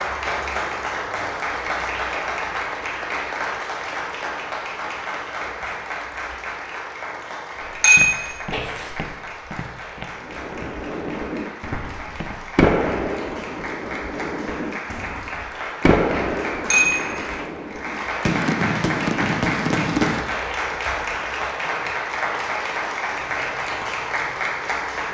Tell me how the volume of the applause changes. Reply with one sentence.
The volume of the applause goes down, then up.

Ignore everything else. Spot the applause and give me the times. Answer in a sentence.
The applause can be heard from 0.0 to 25.0 s.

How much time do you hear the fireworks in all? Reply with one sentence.
The fireworks can be heard for 10 seconds in total.